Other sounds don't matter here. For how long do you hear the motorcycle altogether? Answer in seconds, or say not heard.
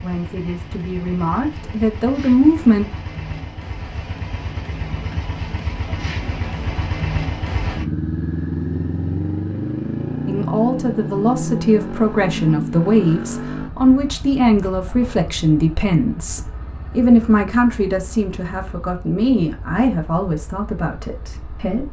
22 s.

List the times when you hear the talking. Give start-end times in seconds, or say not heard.
0.0-2.9, 10.2-21.8.